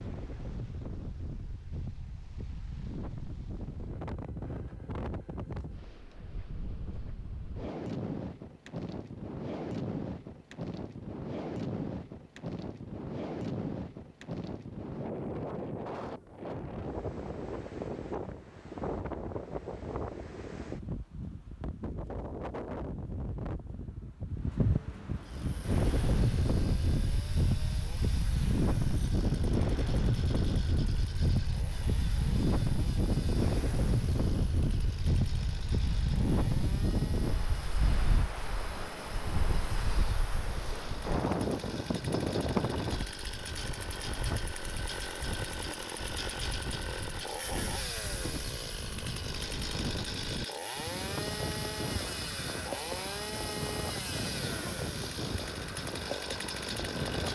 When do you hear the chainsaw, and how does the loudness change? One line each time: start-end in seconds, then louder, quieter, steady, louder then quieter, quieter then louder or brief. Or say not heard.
25.1-57.3 louder.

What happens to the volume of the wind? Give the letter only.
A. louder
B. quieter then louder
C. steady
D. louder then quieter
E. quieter
D.